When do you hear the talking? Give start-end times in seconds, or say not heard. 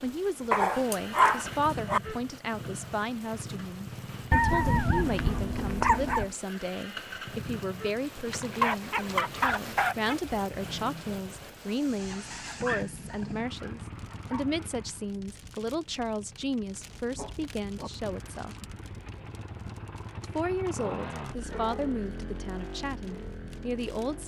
0.0-18.6, 20.2-24.2.